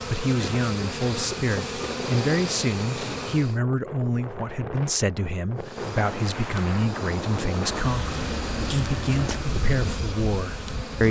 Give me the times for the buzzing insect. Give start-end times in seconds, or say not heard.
0.0-3.6, 5.5-11.0.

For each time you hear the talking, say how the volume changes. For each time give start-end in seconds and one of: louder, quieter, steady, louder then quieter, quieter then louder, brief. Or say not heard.
0.1-11.0 steady.